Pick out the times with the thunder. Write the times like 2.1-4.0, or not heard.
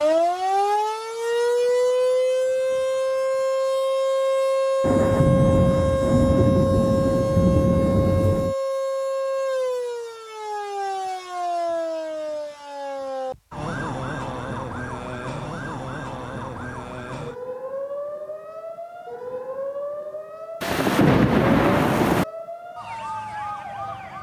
4.8-8.6, 20.6-22.2.